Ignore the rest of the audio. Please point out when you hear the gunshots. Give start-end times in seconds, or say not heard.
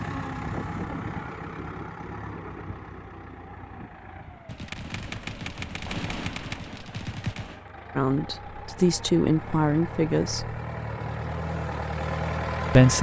4.5-7.7.